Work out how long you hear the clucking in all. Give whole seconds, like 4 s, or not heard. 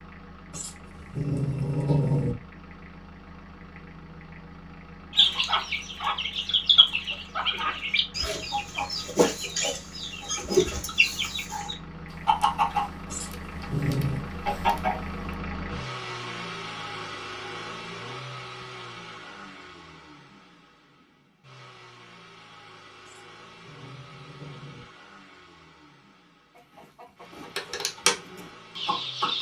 13 s.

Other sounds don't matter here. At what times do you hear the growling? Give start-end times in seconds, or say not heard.
0.5-2.4, 13.1-14.2, 23.1-24.9.